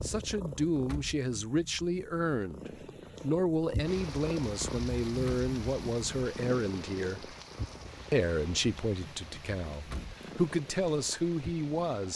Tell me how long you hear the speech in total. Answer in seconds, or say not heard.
11 s.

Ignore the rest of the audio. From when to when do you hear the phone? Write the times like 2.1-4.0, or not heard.
not heard.